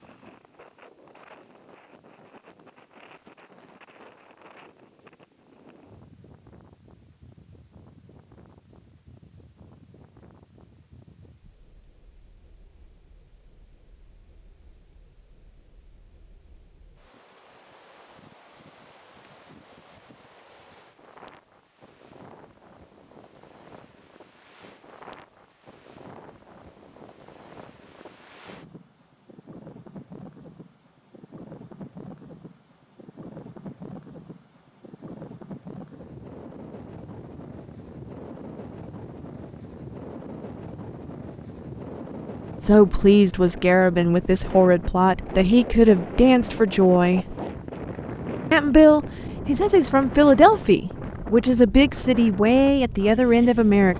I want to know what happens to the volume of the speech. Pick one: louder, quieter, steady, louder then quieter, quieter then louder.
steady.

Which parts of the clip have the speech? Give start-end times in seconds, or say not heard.
42.6-47.4, 48.5-53.9.